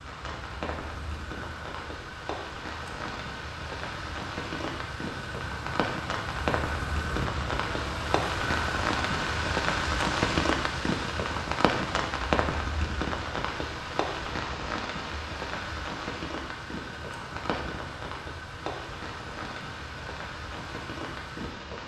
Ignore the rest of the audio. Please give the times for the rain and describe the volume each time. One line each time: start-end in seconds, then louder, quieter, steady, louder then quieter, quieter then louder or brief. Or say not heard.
0.0-21.8 louder then quieter.